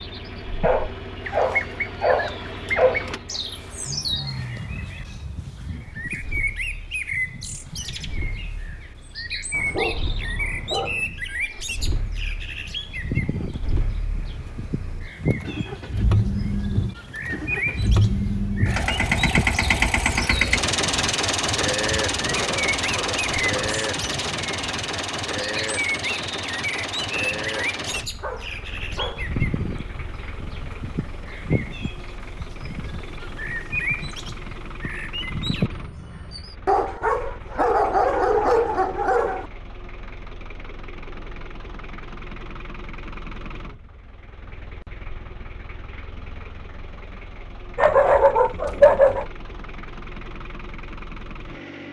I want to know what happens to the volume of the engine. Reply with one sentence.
The loudness of the engine goes up, then down.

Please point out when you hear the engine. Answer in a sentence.
You can hear the engine from 0.0 to 51.8 s.